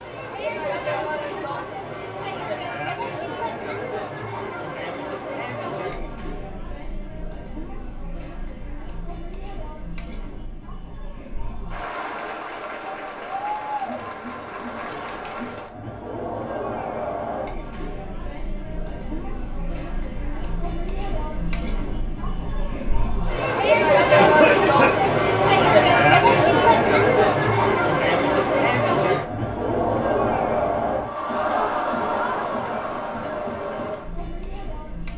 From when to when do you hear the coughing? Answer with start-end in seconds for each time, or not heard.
24.1-25.2.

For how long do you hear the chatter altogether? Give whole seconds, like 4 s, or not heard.
35 s.